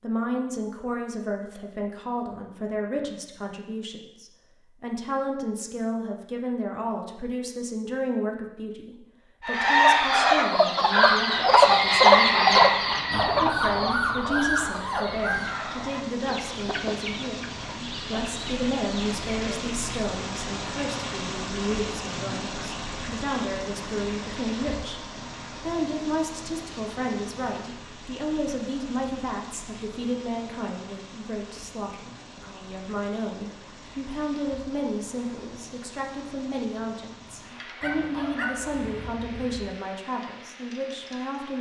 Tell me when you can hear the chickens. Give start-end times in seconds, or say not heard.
9.4-19.8.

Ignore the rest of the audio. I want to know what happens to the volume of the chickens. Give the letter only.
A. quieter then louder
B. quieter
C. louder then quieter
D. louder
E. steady
B.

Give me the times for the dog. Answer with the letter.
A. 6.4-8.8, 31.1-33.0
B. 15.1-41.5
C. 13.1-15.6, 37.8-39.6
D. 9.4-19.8
C.